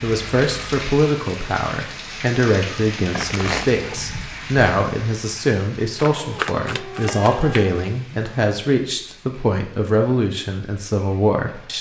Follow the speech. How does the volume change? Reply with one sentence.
The volume of the speech stays about the same.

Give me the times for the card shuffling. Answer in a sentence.
You can hear the card shuffling from 3.1 to 4.0 s and from 6.0 to 7.7 s.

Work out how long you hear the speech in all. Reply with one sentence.
You can hear the speech for 12 seconds altogether.